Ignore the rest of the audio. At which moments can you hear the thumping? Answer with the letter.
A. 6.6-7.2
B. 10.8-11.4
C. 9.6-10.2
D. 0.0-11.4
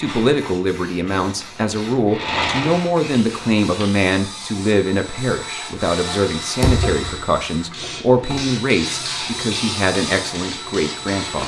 A.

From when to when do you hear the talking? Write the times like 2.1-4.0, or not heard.
0.0-11.4.